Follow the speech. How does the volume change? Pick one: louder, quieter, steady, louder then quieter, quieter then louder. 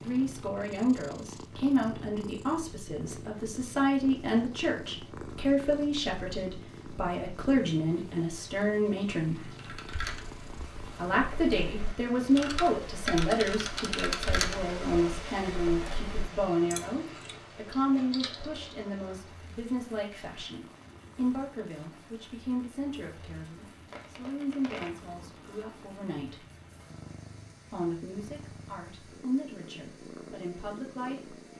quieter.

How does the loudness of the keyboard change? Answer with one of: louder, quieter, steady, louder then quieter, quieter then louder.
louder then quieter.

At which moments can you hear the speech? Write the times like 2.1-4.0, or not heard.
0.1-9.5, 10.9-26.4, 27.7-31.4.